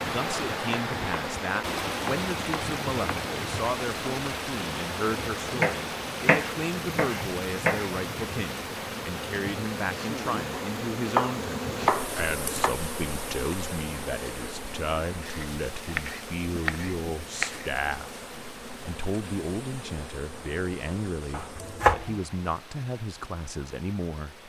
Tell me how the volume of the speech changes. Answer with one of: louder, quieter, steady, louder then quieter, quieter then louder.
steady.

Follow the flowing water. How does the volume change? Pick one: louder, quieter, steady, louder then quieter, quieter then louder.
quieter.